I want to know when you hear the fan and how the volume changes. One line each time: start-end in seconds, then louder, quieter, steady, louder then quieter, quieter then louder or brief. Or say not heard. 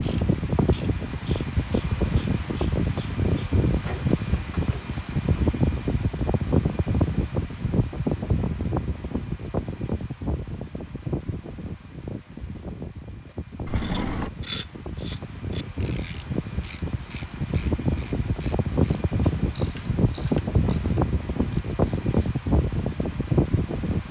0.0-24.0 quieter then louder.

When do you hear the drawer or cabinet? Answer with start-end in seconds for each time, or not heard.
13.7-14.3.